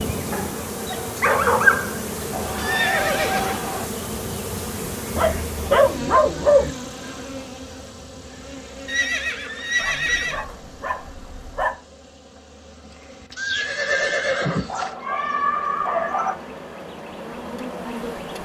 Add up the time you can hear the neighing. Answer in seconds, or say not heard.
5 s.